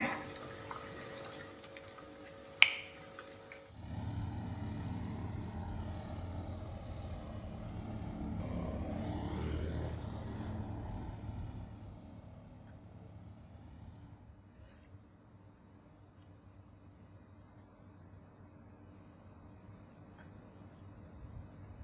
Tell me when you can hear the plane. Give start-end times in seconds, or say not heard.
3.6-14.3.